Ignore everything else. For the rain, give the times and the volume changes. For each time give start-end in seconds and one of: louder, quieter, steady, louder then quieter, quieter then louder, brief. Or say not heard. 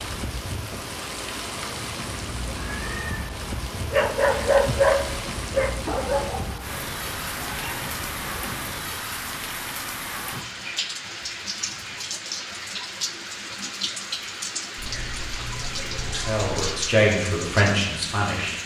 0.0-18.6 steady.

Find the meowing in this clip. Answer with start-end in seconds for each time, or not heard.
2.6-4.5, 6.6-8.8, 14.8-16.8.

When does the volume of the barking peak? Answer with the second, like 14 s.
5 s.